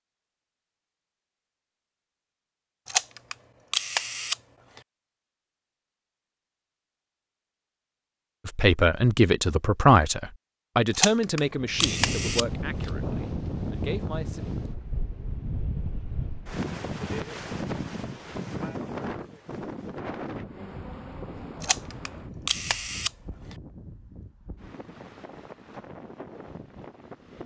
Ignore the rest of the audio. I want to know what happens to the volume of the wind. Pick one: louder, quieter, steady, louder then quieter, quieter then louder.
quieter.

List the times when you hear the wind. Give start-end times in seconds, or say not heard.
11.5-27.4.